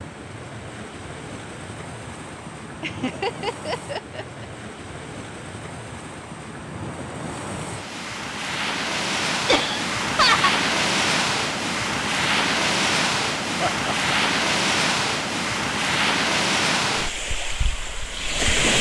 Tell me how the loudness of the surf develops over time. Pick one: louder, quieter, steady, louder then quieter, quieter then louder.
louder.